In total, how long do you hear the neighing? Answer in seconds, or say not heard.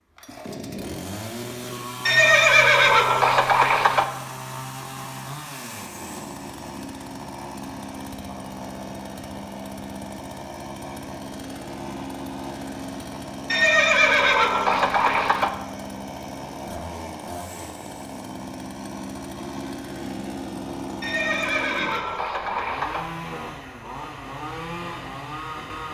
6 s.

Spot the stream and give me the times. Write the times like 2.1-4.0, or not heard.
not heard.